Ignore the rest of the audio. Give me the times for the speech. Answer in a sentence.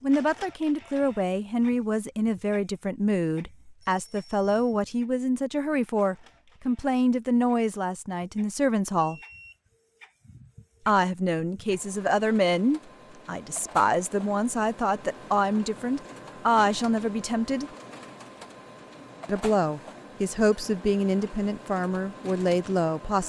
The speech can be heard from 0.0 to 9.2 s, from 10.8 to 17.7 s and from 19.2 to 23.2 s.